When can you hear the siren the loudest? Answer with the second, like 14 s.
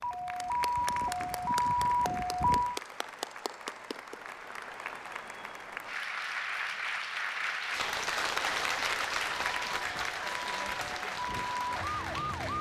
2 s.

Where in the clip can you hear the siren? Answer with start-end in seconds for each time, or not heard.
0.0-2.8, 9.3-12.5.